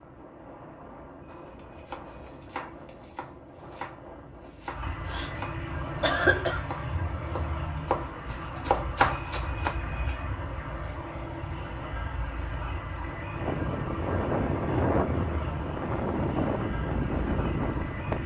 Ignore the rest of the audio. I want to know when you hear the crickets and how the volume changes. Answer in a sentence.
The crickets can be heard from 0.0 to 18.2 s, getting louder.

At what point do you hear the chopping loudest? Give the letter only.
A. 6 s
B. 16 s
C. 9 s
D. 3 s
C.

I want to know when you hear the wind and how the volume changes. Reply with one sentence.
The wind can be heard from 0.0 to 18.2 s, getting louder.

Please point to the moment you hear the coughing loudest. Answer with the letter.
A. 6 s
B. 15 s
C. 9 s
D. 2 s
A.